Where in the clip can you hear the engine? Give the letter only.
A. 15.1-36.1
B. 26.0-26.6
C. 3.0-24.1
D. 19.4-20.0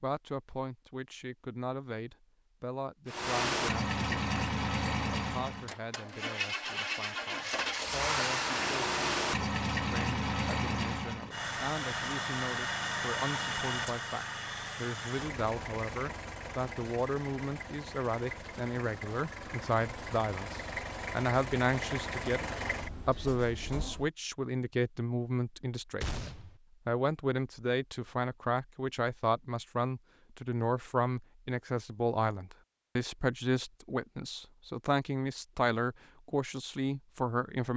C.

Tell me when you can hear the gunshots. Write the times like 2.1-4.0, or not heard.
26.0-26.6.